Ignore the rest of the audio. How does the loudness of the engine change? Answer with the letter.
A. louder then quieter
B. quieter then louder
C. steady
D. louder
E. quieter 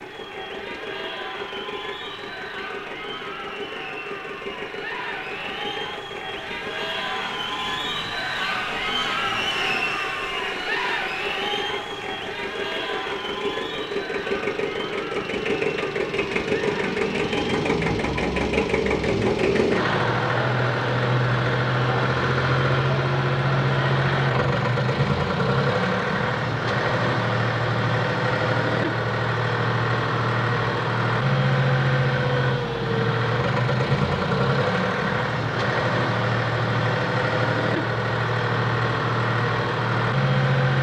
D.